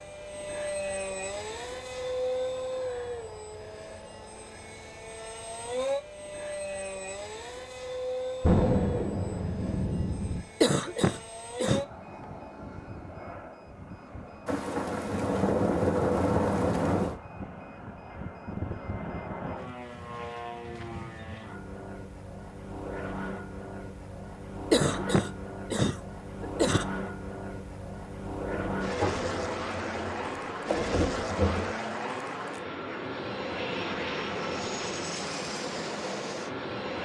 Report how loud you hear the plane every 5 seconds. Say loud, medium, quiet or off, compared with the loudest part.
loud, loud, medium, medium, medium, loud, loud, loud.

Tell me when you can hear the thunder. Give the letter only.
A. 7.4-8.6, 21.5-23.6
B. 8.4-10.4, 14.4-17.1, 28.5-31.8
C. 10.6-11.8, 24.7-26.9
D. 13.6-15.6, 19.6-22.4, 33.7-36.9
B.